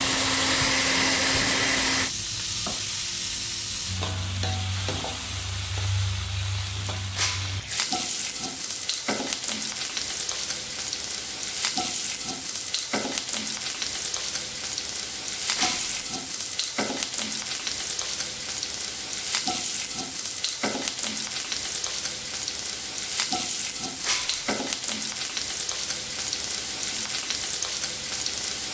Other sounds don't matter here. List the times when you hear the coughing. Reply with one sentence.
You can't hear the coughing here.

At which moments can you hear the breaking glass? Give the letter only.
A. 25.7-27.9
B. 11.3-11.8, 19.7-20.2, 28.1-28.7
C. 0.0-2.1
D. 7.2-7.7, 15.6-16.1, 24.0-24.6
D.